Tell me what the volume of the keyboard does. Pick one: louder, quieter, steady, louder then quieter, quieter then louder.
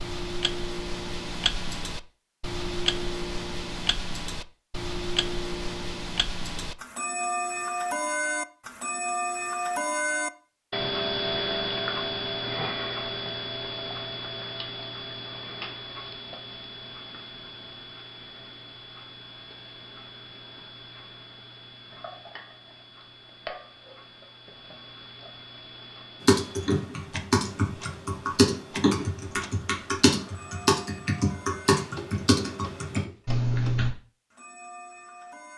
steady.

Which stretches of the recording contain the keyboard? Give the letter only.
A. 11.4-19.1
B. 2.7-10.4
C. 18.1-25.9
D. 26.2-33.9
D.